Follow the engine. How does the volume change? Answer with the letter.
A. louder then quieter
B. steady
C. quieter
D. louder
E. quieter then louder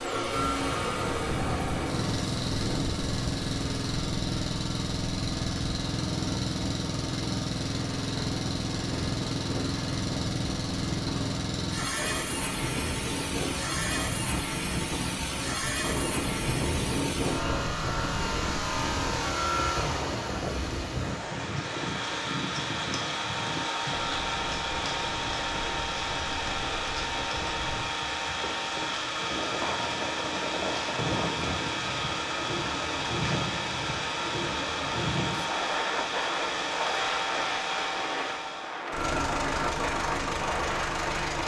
B.